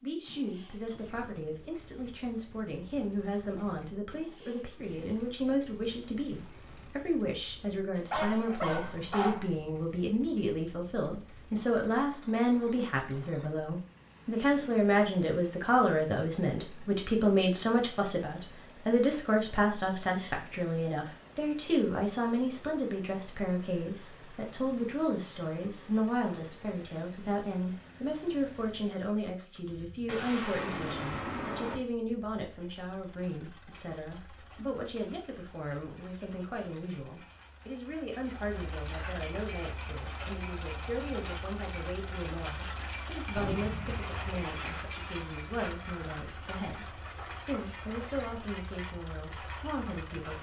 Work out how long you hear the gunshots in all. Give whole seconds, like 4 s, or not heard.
6 s.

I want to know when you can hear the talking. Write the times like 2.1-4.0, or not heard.
0.0-50.3.